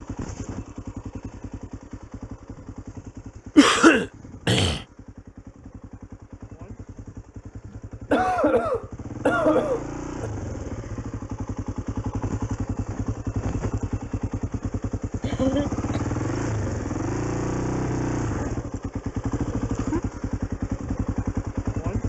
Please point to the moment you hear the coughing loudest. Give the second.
4 s.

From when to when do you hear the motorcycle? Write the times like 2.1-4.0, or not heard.
0.0-22.0.